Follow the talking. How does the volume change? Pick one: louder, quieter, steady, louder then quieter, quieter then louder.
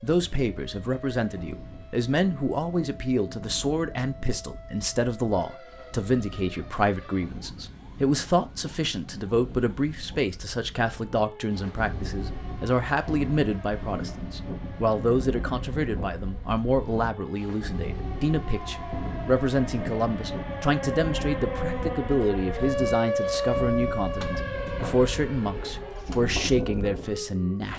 steady.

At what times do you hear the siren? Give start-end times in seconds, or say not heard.
0.0-27.7.